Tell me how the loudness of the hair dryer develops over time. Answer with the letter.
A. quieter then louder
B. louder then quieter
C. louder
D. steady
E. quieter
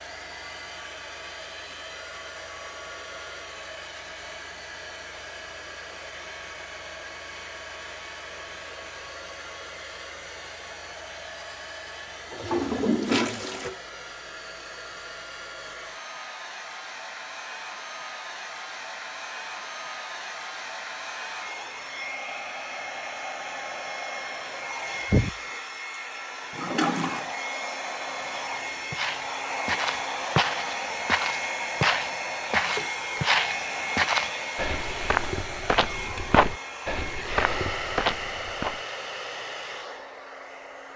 C.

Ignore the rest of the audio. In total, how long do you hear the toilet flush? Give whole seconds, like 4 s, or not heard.
2 s.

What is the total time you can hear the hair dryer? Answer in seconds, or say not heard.
41 s.